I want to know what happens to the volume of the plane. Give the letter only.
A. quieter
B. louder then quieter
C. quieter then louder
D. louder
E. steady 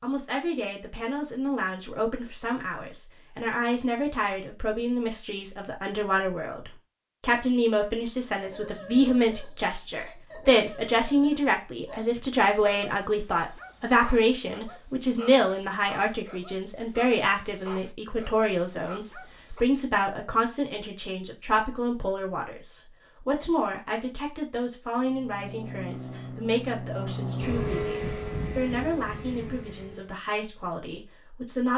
B.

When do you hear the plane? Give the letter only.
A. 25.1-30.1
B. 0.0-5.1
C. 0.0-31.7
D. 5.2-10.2
A.